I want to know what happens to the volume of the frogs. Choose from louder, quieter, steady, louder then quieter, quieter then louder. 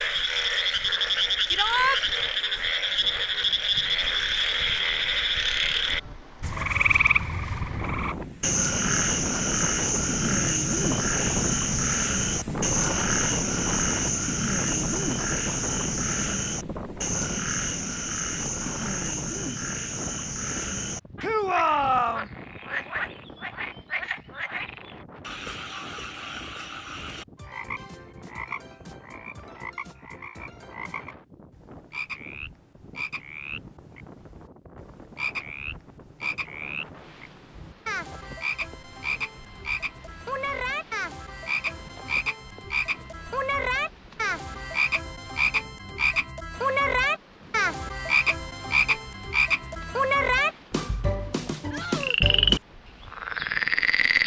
quieter then louder.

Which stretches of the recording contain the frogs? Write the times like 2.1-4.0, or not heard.
0.0-54.2.